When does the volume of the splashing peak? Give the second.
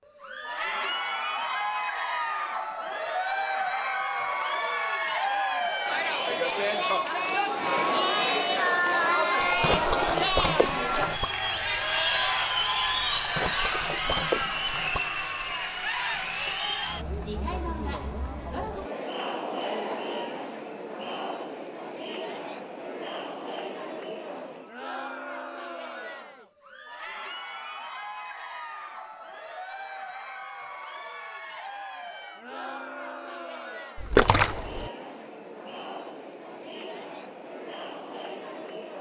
34 s.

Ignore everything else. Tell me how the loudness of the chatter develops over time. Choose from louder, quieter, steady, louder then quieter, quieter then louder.
quieter.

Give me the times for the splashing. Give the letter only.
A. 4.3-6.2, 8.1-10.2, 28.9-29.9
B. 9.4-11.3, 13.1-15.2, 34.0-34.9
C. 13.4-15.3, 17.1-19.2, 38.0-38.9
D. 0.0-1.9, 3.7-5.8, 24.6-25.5
B.